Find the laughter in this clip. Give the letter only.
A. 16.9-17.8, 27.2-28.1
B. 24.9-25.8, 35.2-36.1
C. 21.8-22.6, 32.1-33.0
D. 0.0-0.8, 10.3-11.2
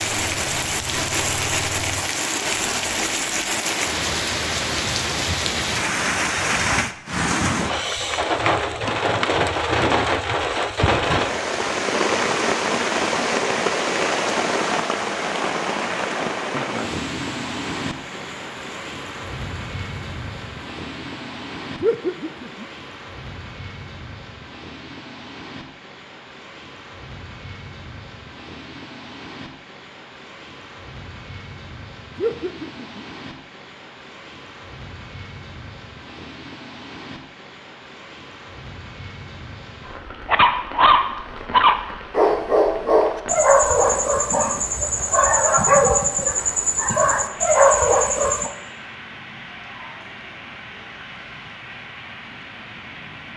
C.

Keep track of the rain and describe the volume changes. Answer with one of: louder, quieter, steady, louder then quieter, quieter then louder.
quieter.